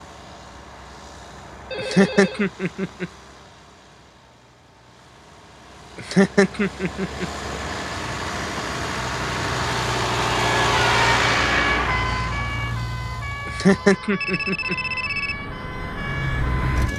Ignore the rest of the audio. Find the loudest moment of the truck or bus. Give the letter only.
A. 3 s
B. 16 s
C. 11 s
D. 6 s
C.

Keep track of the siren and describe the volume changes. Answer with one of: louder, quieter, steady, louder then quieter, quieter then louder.
quieter.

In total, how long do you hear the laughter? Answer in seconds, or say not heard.
4 s.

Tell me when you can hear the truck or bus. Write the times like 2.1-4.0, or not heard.
0.0-16.9.